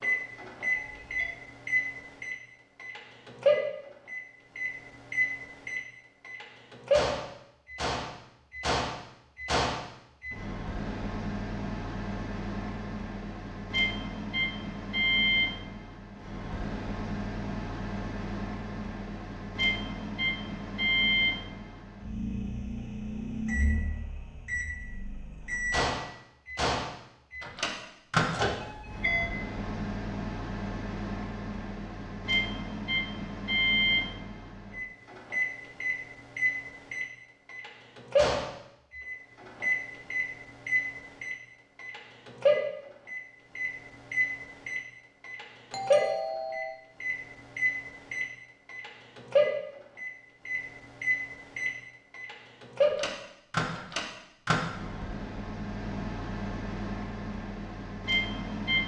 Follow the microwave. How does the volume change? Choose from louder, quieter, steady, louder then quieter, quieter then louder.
steady.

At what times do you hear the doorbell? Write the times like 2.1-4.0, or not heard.
0.8-1.4, 28.6-29.4, 45.7-46.8.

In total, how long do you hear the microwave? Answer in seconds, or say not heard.
59 s.